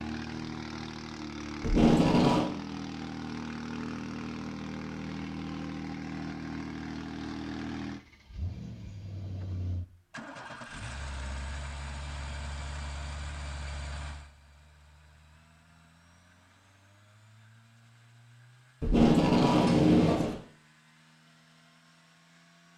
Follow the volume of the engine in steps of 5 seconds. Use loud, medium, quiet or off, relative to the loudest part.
loud, loud, medium, quiet, quiet.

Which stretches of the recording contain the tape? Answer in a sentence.
The tape can be heard from 1.6 to 2.5 s and from 18.8 to 20.4 s.